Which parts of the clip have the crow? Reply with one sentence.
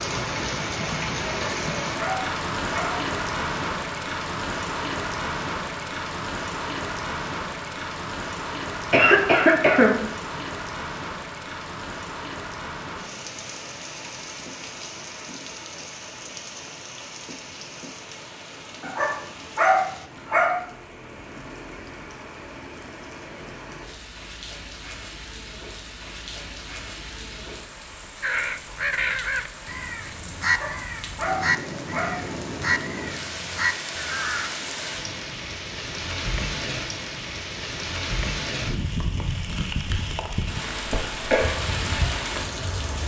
You can hear the crow from 28.2 to 34.5 s.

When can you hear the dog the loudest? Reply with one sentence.
The loudest moment of the dog is at 20 seconds.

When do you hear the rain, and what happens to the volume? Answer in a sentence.
The rain can be heard from 0.0 to 43.0 s, getting quieter then louder.